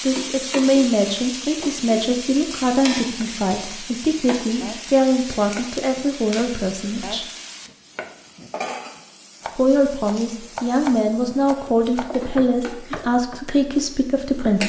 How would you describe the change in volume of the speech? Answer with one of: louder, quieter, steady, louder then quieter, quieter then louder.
steady.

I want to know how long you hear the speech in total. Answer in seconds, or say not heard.
12 s.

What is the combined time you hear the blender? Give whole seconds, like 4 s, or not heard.
not heard.